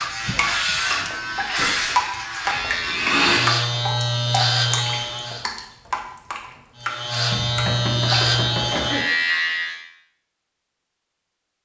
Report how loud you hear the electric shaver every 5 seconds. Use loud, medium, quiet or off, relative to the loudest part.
loud, loud, off.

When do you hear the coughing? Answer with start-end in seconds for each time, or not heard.
0.2-0.8, 8.7-9.2.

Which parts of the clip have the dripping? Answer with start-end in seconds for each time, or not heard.
0.0-8.2.